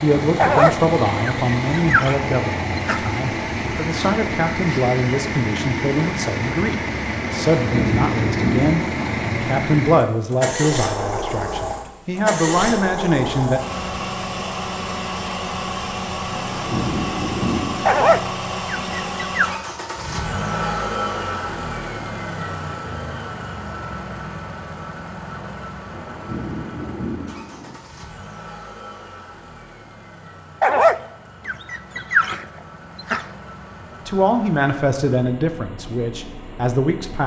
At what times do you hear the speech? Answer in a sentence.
The speech can be heard from 0.0 to 13.6 s and from 34.0 to 37.2 s.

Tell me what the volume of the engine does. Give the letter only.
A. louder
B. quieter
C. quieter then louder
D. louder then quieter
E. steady
B.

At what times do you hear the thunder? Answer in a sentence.
You can hear the thunder from 7.3 to 9.2 s, from 16.3 to 18.1 s and from 25.9 to 27.8 s.